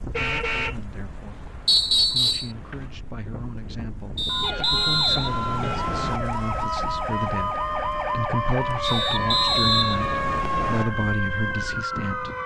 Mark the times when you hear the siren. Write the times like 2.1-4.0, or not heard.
4.2-12.4.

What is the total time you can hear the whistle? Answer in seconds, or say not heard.
5 s.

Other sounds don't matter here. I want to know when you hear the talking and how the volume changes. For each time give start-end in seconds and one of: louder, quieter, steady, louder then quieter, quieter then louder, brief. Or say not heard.
0.0-12.3 louder.